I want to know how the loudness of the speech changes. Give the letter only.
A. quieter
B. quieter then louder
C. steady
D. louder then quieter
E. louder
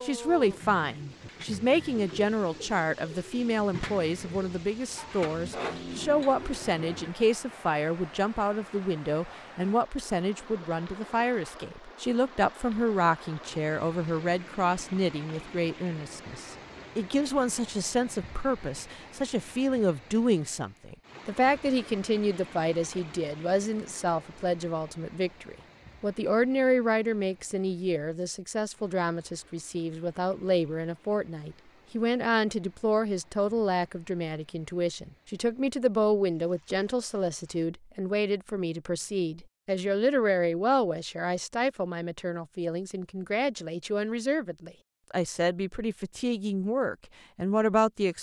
C.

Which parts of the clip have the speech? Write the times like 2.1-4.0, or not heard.
0.0-48.1.